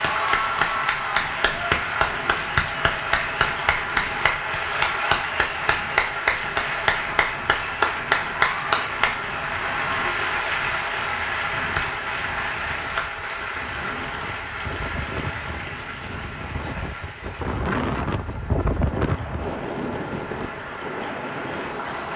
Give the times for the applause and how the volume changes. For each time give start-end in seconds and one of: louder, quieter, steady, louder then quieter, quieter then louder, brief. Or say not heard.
0.0-22.1 quieter.